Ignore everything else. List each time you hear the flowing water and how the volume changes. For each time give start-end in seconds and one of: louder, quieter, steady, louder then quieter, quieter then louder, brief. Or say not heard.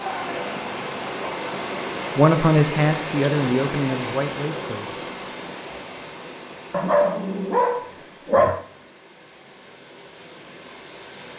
0.0-11.3 quieter.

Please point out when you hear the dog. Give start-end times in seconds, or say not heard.
6.7-8.7.